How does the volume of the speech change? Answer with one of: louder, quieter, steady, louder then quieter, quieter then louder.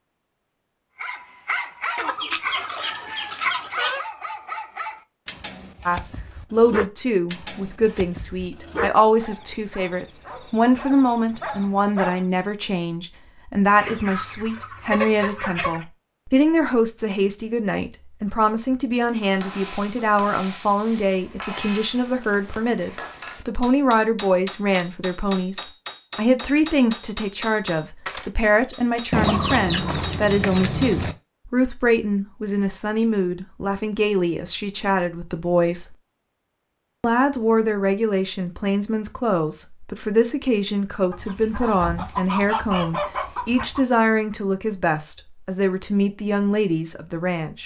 steady.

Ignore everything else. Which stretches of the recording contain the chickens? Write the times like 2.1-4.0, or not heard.
1.9-4.0, 13.8-15.8, 29.1-31.1, 41.1-43.9.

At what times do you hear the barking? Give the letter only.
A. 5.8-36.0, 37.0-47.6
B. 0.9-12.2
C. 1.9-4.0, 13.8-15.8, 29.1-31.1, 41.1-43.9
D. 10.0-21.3
B.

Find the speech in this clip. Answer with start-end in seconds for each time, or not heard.
5.8-36.0, 37.0-47.6.